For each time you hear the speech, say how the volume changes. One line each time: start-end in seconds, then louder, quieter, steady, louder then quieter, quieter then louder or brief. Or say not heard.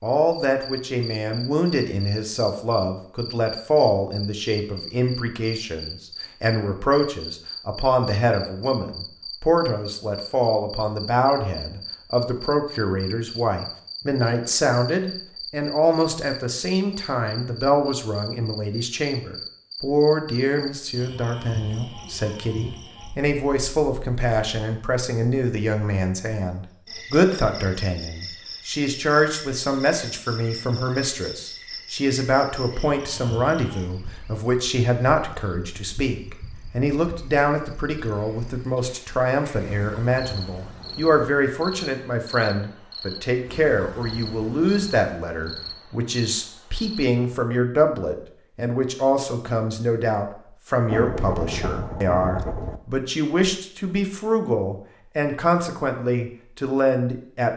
0.0-57.5 steady.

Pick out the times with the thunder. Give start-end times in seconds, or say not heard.
50.9-52.8.